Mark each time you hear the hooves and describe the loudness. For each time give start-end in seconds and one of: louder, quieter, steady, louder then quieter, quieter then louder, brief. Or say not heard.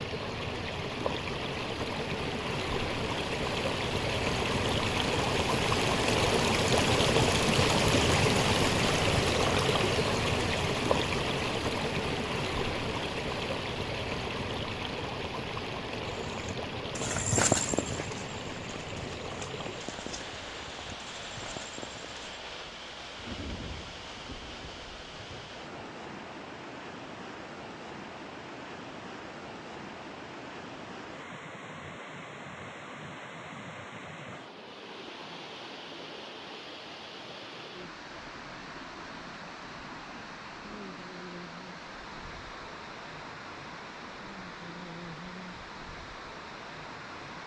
16.1-22.4 quieter.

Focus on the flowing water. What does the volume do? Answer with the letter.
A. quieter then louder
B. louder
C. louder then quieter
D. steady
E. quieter
E.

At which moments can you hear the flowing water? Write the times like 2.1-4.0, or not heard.
0.0-47.4.